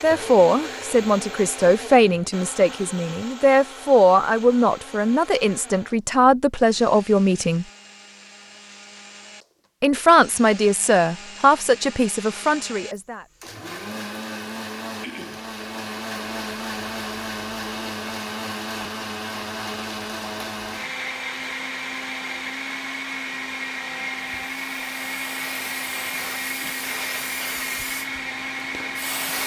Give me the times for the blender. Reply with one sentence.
You can hear the blender from 0.0 to 29.4 s.